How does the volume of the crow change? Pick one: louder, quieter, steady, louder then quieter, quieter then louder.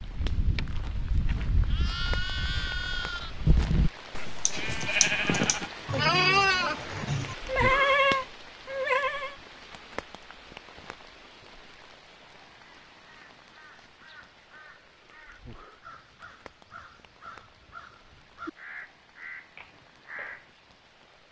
louder.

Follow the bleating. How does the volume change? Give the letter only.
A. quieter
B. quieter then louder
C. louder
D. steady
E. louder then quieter
C.